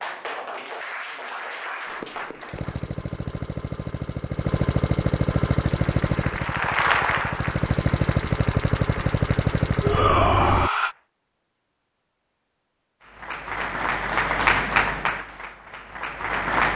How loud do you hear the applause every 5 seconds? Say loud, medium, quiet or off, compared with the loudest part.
medium, medium, loud, loud.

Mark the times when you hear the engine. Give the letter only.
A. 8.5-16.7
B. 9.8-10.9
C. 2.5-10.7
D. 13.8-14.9
C.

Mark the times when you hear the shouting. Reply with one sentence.
The shouting can be heard from 9.8 to 10.9 s.